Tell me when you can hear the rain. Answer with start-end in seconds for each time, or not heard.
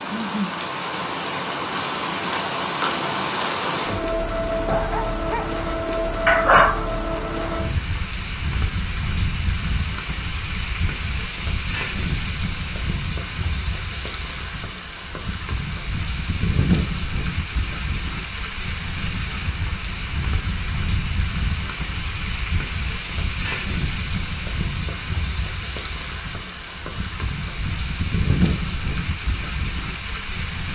0.0-30.7.